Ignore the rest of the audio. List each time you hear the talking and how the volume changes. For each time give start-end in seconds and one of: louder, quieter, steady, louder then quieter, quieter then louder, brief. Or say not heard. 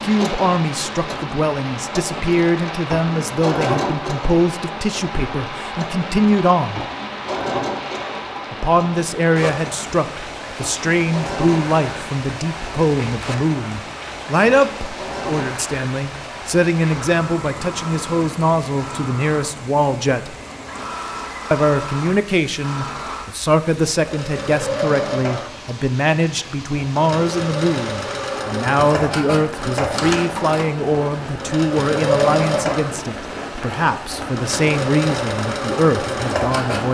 0.0-6.8 steady
8.5-20.4 steady
21.5-36.8 steady.